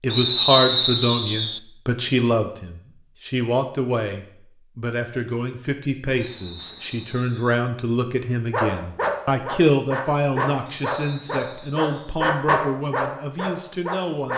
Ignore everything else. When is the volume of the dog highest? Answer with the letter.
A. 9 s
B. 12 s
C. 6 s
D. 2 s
B.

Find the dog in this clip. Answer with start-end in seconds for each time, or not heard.
8.5-14.3.